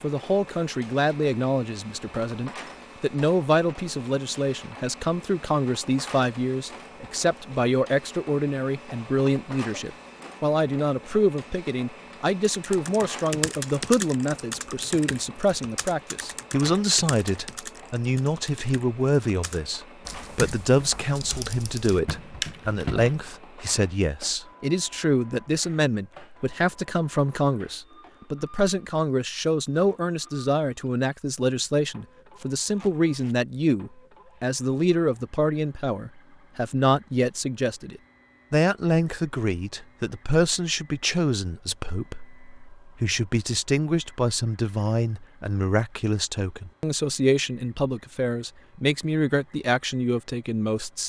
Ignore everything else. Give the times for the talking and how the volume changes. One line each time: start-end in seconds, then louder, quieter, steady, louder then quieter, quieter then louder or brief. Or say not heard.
0.0-51.0 steady.